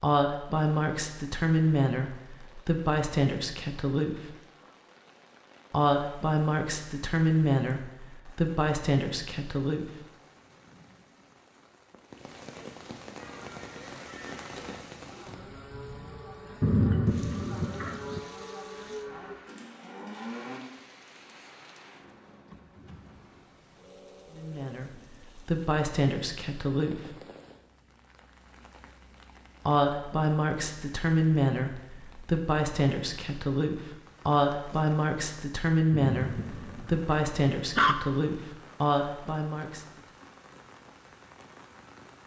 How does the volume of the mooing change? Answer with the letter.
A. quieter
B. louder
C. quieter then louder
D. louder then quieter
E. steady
B.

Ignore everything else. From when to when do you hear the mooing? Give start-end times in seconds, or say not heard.
13.2-20.6.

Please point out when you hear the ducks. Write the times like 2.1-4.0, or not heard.
not heard.